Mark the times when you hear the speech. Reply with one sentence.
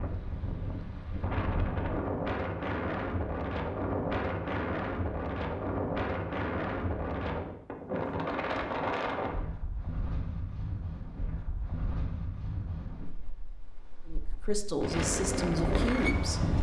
The speech can be heard from 14.1 to 16.4 s.